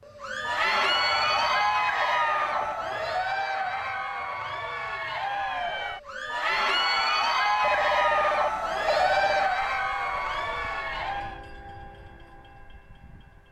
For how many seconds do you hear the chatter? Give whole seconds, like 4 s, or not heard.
11 s.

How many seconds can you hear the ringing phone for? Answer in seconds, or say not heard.
4 s.